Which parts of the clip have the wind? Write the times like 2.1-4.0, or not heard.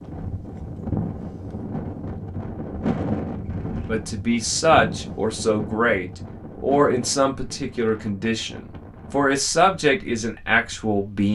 0.0-10.9.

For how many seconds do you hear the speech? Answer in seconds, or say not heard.
7 s.